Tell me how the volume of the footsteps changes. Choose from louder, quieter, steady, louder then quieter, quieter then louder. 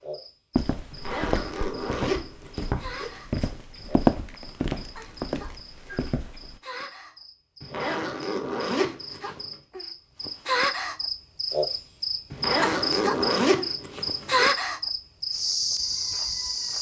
louder then quieter.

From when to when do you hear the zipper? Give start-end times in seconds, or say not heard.
0.9-3.1, 7.6-9.6, 12.3-14.5.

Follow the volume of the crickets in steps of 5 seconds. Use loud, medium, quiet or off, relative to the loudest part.
quiet, quiet, loud, loud.